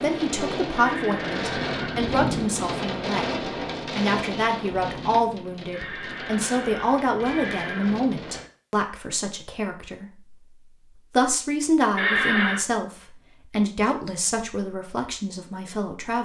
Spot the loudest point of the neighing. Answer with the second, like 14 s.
12 s.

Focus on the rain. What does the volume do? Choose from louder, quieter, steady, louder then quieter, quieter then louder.
quieter.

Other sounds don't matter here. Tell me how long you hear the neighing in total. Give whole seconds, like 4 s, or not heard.
5 s.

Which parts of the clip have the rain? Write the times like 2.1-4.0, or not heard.
0.0-8.5.